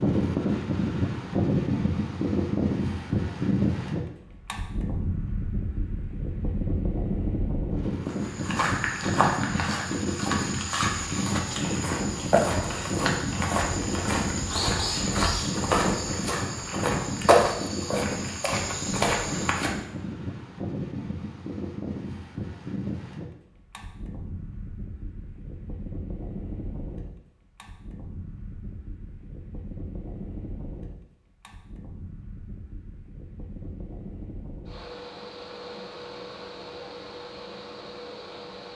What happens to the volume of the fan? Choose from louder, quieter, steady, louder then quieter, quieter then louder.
quieter.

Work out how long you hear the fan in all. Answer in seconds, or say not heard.
39 s.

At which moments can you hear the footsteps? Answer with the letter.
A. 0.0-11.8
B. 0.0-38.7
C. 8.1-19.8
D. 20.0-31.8
C.